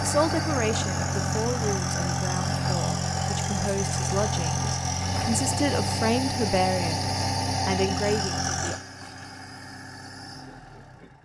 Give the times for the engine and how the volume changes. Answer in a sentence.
You can hear the engine from 0.0 to 11.1 s, getting quieter.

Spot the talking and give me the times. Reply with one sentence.
The talking can be heard from 0.0 to 8.8 s.